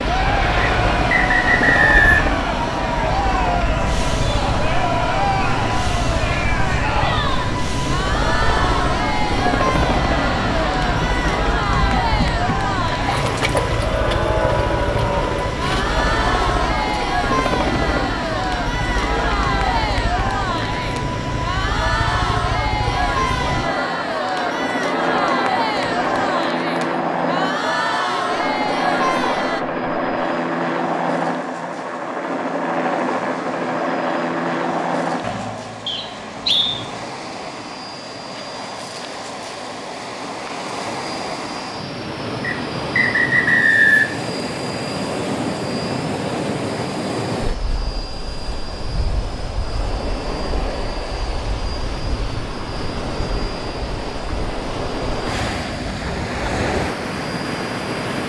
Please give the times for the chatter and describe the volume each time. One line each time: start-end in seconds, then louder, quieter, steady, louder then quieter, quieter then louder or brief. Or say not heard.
0.0-29.6 steady.